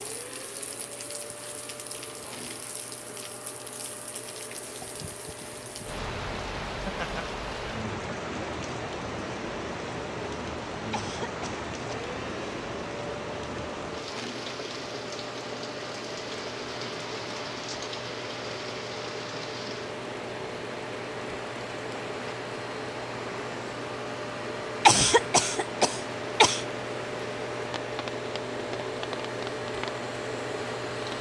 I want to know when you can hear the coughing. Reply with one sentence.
You can hear the coughing from 10.9 to 12.1 s and from 24.9 to 26.6 s.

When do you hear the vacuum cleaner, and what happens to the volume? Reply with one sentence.
The vacuum cleaner can be heard from 0.0 to 31.1 s, getting louder.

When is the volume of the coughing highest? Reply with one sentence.
The loudest moment of the coughing is at 25 seconds.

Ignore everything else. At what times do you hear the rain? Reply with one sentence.
You can hear the rain from 0.0 to 31.1 s.